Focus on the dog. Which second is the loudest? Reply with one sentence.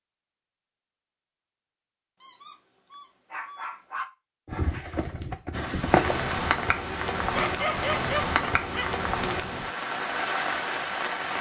The volume of the dog peaks at 8 seconds.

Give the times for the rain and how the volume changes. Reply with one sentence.
The rain can be heard from 5.5 to 11.3 s, at a steady volume.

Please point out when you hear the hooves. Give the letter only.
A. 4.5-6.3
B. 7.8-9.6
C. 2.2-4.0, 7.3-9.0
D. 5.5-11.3
A.